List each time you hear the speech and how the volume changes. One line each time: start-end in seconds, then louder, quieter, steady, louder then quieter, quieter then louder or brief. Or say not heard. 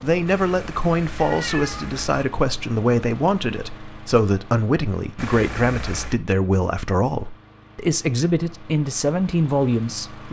0.0-10.2 steady.